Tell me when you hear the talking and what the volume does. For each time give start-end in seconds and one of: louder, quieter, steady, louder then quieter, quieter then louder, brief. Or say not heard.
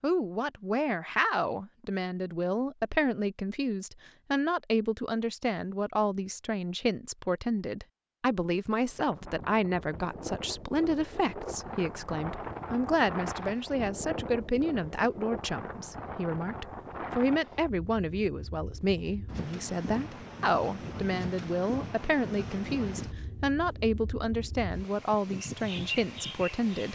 0.0-26.9 steady.